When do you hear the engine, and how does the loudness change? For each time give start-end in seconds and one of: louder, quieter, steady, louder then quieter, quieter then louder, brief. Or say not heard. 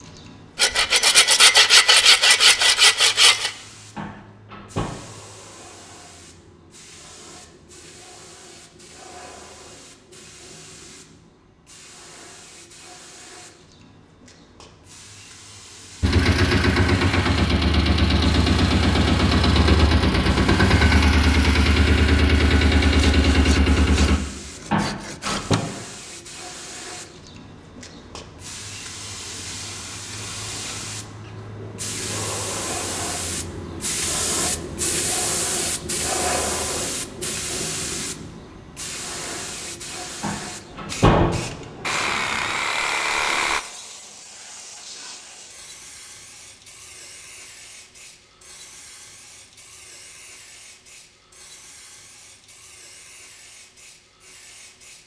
16.0-24.2 steady.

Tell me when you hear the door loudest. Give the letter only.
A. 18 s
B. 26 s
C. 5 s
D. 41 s
D.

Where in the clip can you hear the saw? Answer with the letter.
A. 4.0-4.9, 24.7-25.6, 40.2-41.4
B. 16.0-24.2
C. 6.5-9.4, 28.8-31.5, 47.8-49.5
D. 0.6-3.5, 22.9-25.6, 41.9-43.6
D.